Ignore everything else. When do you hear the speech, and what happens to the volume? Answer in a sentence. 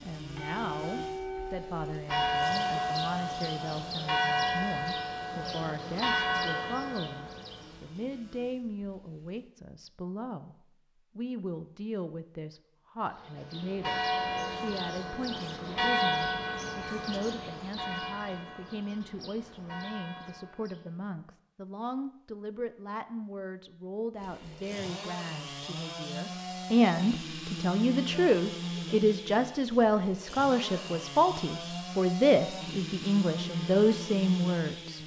The speech can be heard from 0.0 to 10.6 s, at a steady volume; and from 11.2 to 35.0 s, getting louder.